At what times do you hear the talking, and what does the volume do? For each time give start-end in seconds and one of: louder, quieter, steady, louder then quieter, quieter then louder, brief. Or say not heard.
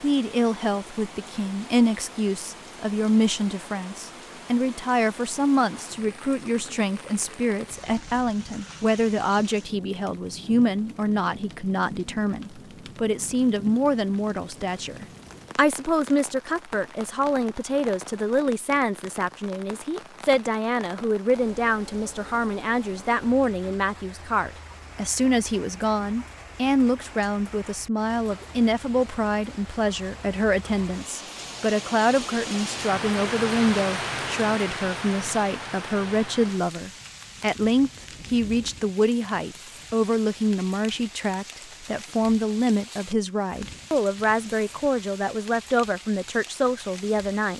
0.0-47.5 steady.